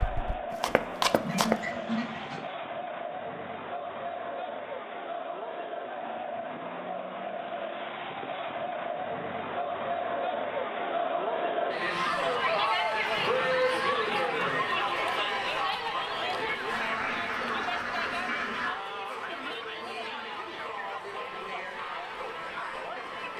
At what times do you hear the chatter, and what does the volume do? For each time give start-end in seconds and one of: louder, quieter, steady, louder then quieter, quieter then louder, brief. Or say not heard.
0.0-23.3 louder then quieter.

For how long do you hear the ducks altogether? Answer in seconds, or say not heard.
3 s.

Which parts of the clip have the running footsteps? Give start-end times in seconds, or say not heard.
0.0-1.6.